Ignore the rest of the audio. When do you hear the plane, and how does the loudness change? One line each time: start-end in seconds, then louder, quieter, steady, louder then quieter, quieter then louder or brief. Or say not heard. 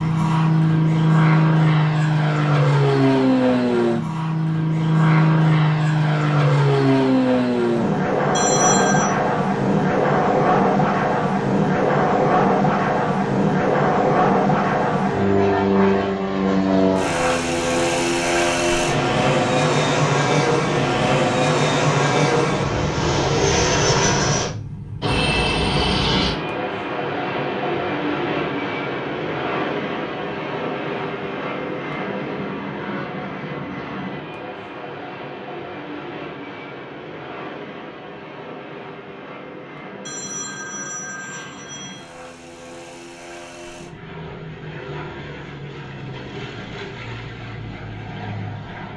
0.0-48.9 quieter.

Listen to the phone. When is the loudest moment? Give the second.
9 s.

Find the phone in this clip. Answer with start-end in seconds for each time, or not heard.
8.3-9.1, 40.0-42.0.